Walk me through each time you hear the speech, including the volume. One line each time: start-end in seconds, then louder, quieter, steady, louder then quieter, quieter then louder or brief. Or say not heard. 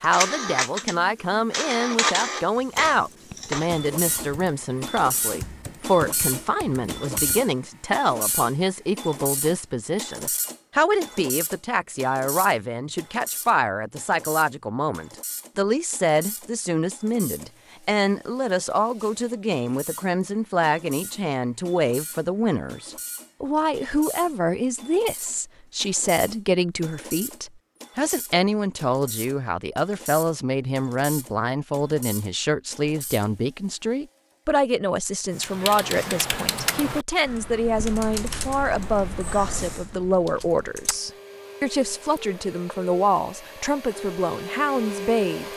0.0-45.5 steady.